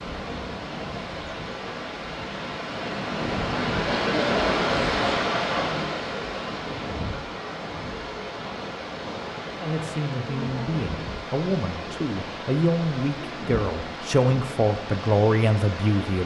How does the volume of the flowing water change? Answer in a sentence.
The loudness of the flowing water goes up, then down.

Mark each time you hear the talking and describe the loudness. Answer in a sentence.
You can hear the talking from 9.6 to 16.2 s, getting louder.